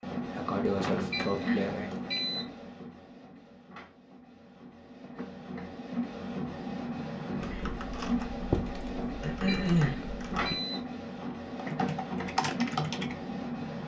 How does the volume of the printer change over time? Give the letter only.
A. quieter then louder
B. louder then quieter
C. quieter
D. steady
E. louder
A.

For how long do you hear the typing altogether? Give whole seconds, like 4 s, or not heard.
5 s.